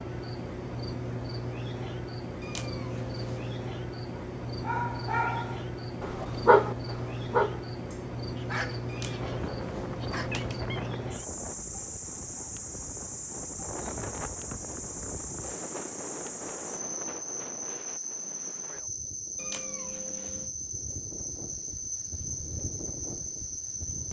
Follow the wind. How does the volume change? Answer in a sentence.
The volume of the wind goes down, then up.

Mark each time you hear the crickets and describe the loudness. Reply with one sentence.
You can hear the crickets from 0.0 to 24.0 s, at a steady volume.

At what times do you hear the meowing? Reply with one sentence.
The meowing can be heard from 2.4 to 3.5 s, from 8.8 to 10.9 s and from 19.4 to 20.5 s.